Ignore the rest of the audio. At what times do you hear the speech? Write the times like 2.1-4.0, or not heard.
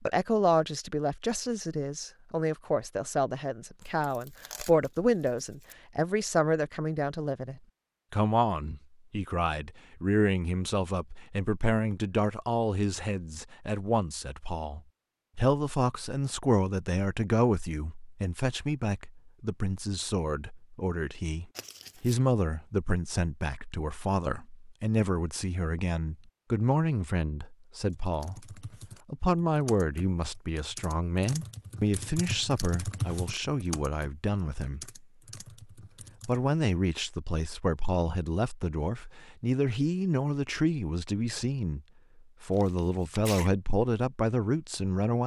0.0-35.0, 36.2-41.8, 42.4-45.2.